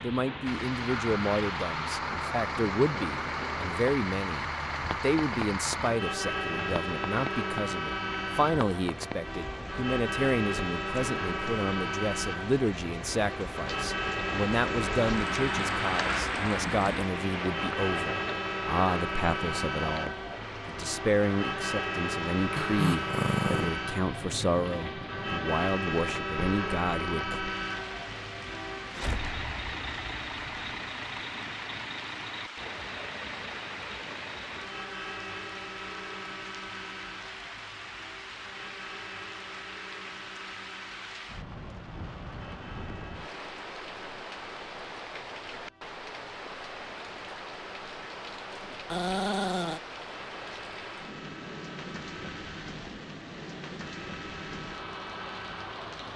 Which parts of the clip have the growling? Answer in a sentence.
The growling can be heard from 22.6 to 23.8 s and from 48.6 to 49.8 s.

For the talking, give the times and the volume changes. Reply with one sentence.
You can hear the talking from 0.0 to 27.4 s, at a steady volume.